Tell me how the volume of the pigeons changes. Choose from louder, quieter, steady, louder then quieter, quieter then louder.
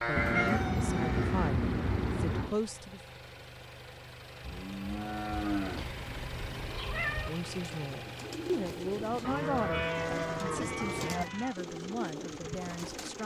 steady.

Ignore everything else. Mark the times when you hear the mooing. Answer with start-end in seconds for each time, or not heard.
0.0-1.5, 4.4-5.9, 9.2-11.2.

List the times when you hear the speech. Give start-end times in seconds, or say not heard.
0.1-3.0, 7.1-13.2.